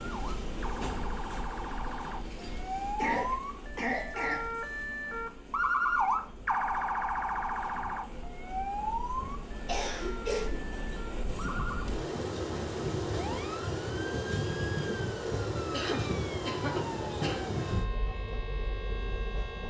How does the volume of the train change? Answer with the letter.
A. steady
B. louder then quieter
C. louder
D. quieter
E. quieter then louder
E.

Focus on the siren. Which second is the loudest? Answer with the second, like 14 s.
6 s.